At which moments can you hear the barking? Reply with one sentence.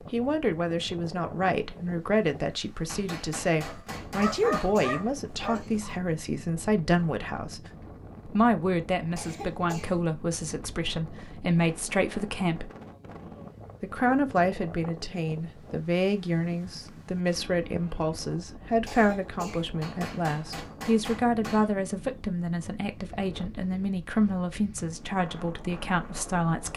You can hear the barking from 3.6 to 6.0 s.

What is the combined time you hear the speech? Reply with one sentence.
The speech can be heard for 25 seconds in total.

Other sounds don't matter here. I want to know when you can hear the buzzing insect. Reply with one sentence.
The buzzing insect can't be heard in this clip.